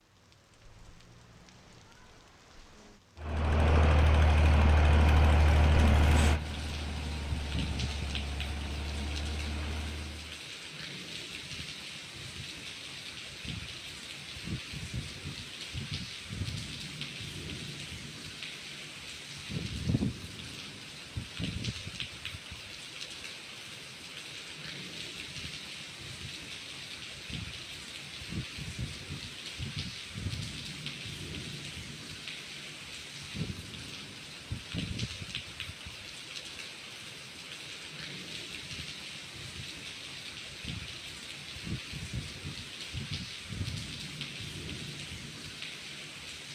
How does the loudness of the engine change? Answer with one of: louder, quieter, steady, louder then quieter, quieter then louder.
quieter.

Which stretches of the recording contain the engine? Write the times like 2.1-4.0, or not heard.
3.1-10.4.